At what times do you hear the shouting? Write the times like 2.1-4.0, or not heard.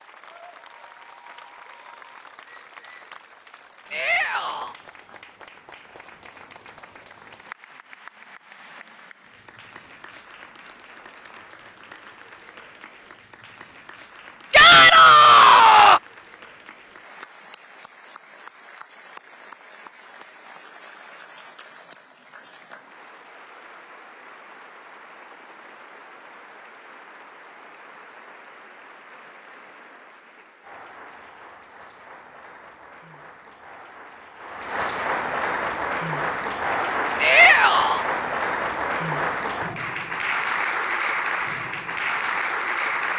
3.9-4.8, 14.5-16.0, 37.2-38.0.